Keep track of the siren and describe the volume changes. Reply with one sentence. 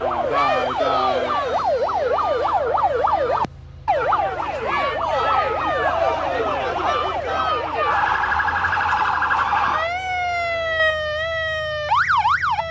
The volume of the siren stays about the same.